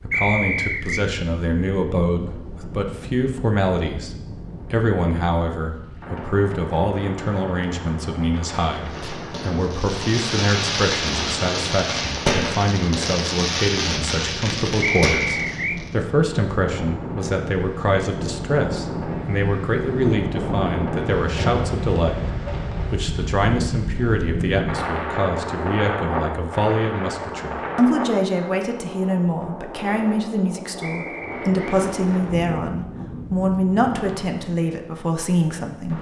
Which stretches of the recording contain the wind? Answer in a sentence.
The wind can be heard from 0.0 to 35.9 s.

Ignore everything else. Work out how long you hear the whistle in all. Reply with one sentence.
You can hear the whistle for 3 seconds altogether.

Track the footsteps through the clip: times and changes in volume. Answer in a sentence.
The footsteps can't be heard in this clip.